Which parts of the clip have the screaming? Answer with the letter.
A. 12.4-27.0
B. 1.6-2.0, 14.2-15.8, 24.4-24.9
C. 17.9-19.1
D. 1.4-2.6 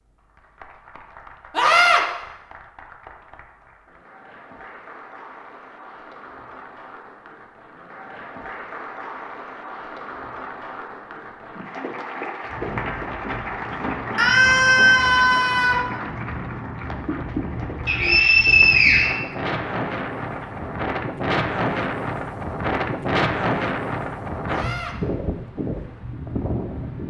B.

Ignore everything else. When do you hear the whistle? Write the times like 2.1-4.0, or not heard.
17.9-19.1.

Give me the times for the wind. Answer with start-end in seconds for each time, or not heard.
12.4-27.0.